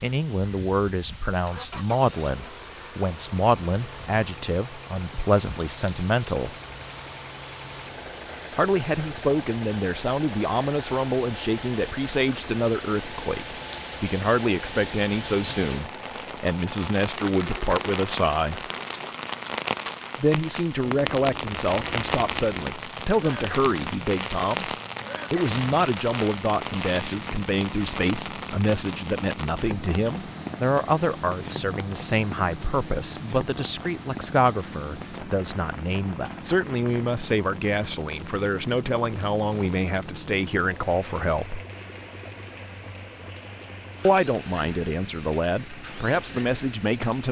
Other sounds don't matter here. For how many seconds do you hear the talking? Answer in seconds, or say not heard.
41 s.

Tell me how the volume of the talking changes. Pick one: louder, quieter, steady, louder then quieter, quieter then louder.
steady.